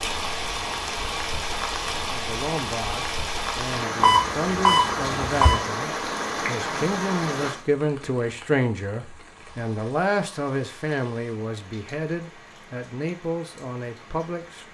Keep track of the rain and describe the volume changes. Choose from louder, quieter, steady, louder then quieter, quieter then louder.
quieter.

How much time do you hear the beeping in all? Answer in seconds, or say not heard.
2 s.